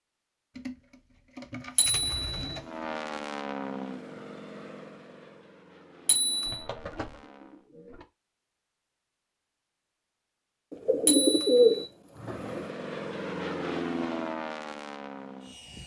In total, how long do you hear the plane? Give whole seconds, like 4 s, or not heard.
9 s.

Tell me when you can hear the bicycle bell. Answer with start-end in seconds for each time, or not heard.
1.8-2.4, 6.0-6.7, 11.1-11.9.